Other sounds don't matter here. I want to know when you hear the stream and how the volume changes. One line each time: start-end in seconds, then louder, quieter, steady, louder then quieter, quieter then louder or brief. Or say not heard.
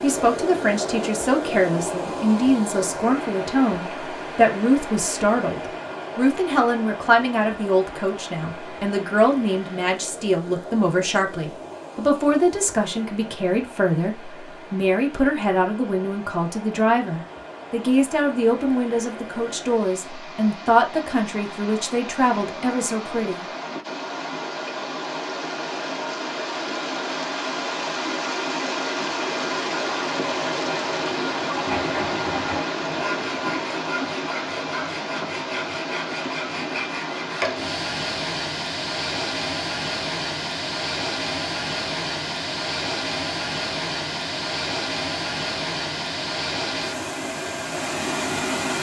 0.0-48.7 quieter then louder.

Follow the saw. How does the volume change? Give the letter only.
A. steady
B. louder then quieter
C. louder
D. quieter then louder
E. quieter
A.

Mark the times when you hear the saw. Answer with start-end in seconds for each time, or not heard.
31.6-37.7.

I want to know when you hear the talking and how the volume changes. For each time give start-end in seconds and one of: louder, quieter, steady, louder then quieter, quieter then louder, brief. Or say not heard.
0.0-23.4 steady.